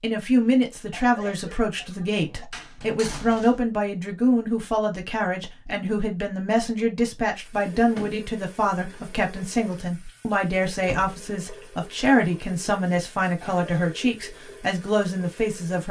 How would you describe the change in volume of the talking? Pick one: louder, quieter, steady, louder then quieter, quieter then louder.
steady.